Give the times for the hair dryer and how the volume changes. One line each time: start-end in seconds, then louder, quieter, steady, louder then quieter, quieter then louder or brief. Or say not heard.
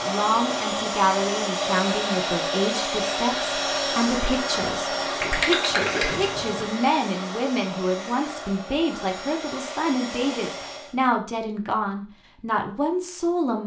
0.0-10.9 quieter.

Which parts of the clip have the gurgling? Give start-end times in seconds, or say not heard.
5.2-6.7.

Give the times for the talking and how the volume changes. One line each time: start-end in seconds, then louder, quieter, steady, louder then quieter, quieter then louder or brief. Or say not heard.
0.0-13.6 steady.